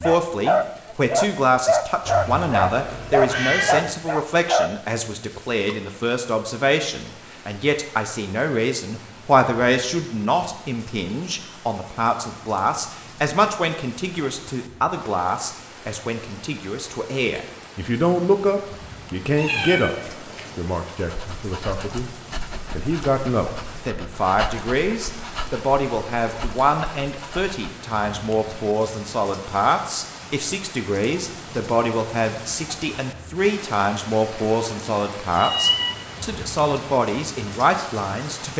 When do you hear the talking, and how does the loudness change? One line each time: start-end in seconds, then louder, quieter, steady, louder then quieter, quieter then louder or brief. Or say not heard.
0.0-22.1 steady
22.8-38.5 steady.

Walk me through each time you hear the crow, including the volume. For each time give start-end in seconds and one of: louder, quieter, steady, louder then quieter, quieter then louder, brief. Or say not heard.
not heard.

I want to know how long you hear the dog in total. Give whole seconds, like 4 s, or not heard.
11 s.